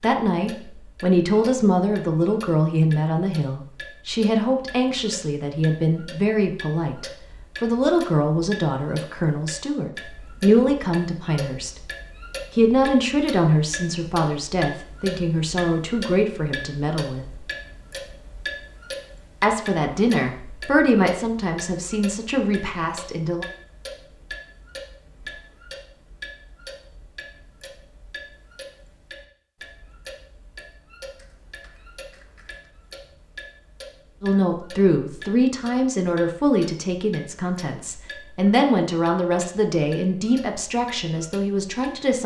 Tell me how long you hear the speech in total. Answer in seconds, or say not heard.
29 s.